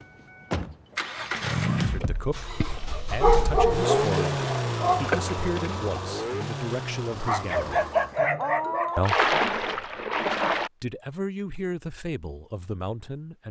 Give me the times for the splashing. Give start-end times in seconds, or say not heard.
1.1-2.9, 5.0-5.8, 9.0-10.7.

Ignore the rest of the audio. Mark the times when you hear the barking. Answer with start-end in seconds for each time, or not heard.
3.1-5.0, 7.2-9.1.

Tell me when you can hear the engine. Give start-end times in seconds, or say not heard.
0.0-8.2.